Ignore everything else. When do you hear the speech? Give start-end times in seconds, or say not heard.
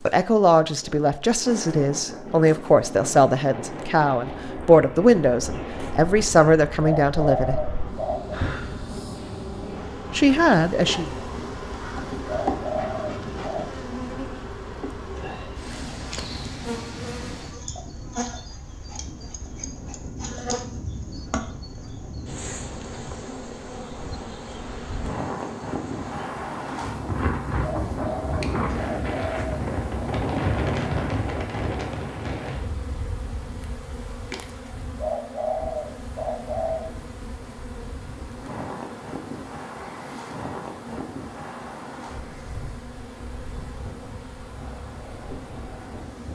0.1-7.7, 10.1-11.1.